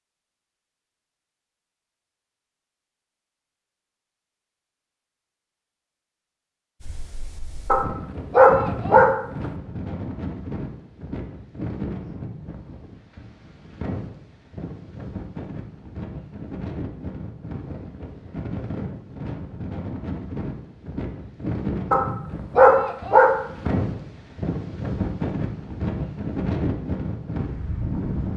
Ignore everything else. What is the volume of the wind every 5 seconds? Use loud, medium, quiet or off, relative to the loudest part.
off, medium, medium, medium, loud, loud.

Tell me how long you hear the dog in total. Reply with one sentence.
The dog can be heard for 3 seconds in total.